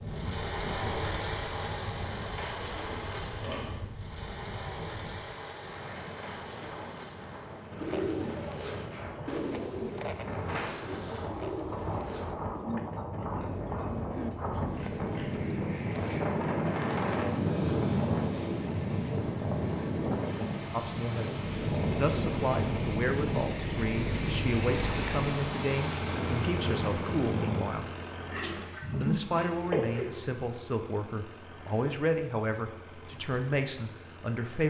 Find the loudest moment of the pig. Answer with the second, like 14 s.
30 s.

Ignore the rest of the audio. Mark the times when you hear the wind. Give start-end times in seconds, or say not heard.
0.0-27.6.